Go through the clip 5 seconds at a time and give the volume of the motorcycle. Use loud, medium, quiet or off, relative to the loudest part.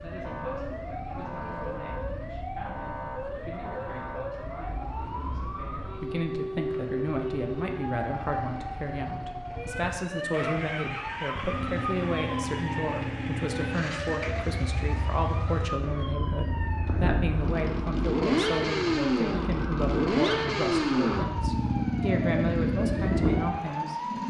quiet, quiet, medium, loud, loud.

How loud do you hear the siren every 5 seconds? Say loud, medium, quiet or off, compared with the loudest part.
loud, loud, loud, medium, loud.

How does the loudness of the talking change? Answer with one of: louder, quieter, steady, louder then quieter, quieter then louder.
louder.